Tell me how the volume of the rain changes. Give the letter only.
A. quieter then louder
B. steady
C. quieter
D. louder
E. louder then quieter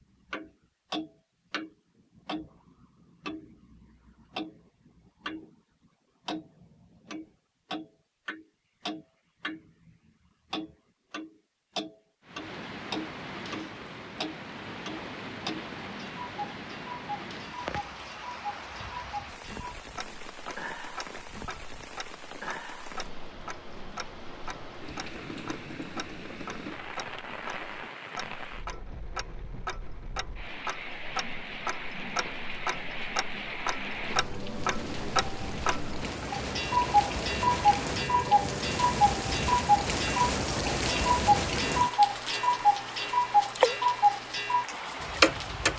D.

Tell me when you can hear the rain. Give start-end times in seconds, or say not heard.
12.2-45.7.